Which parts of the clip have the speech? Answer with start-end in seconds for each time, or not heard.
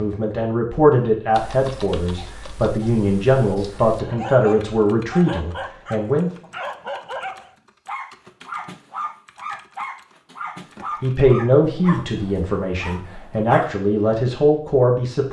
0.0-6.3, 11.0-15.2.